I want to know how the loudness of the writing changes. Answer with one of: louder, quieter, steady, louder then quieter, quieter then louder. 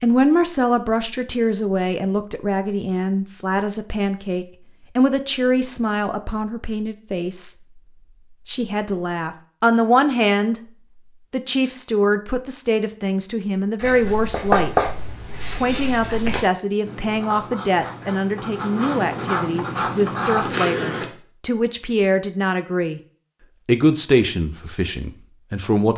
quieter then louder.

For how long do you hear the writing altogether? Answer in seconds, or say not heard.
7 s.